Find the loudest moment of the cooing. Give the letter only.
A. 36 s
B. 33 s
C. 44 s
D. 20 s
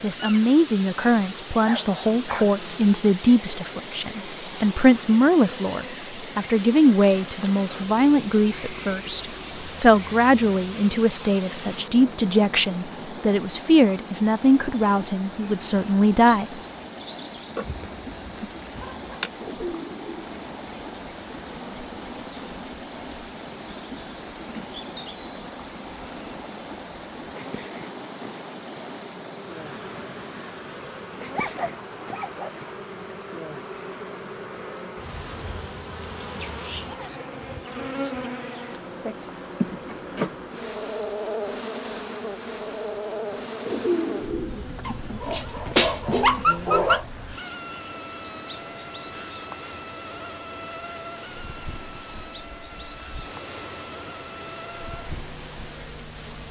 C.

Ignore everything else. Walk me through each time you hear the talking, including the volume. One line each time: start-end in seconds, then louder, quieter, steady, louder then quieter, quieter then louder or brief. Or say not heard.
0.0-16.5 steady.